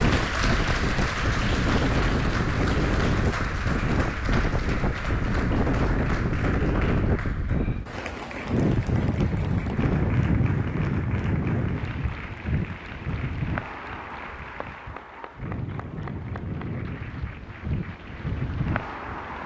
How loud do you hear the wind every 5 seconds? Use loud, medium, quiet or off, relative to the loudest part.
loud, loud, loud, medium.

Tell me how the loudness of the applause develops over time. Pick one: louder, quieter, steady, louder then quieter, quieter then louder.
quieter.